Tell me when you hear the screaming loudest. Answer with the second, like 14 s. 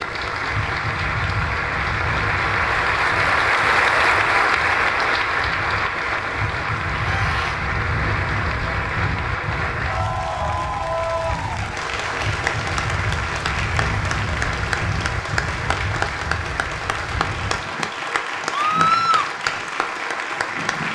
19 s.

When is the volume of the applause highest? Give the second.
4 s.